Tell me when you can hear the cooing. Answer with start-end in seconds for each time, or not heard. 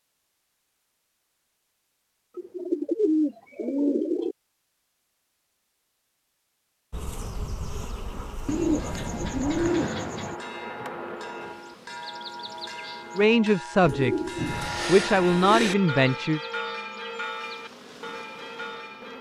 2.4-4.3, 8.4-10.3, 13.8-15.8.